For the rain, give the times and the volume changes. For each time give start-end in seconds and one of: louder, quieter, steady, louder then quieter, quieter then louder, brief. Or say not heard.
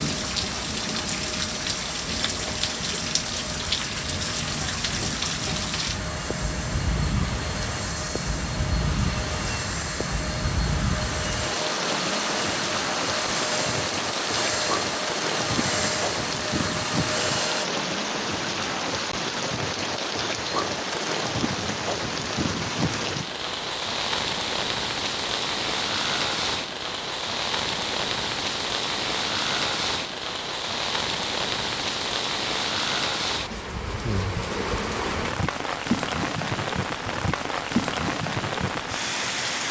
0.0-39.6 steady.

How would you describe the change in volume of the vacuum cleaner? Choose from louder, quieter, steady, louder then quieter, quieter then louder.
louder.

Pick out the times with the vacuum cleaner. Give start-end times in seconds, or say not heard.
0.0-17.6.